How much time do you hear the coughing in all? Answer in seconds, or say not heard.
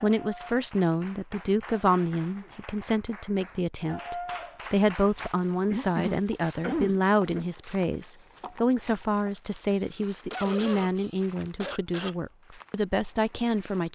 5 s.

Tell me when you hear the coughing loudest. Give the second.
7 s.